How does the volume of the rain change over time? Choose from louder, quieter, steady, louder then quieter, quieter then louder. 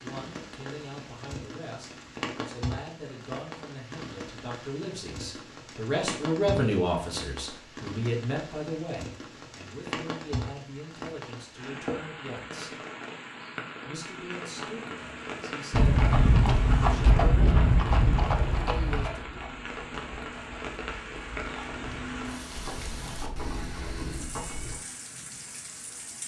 steady.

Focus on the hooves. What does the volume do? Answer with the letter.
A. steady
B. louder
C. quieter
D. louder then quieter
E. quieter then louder
E.